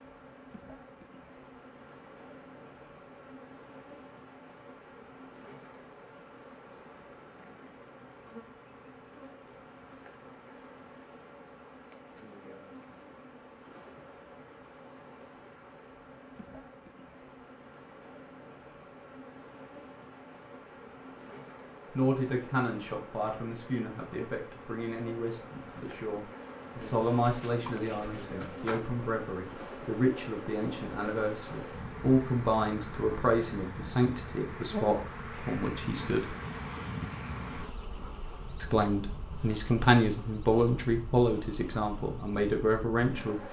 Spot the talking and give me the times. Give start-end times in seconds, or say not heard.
21.9-36.4, 38.6-43.4.